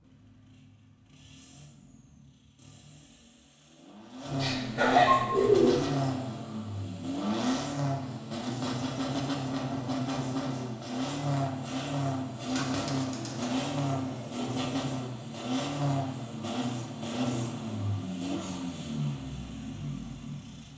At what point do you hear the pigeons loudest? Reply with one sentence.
The loudest moment of the pigeons is at 5 seconds.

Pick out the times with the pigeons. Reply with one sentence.
The pigeons can be heard from 4.4 to 5.8 s and from 12.4 to 14.4 s.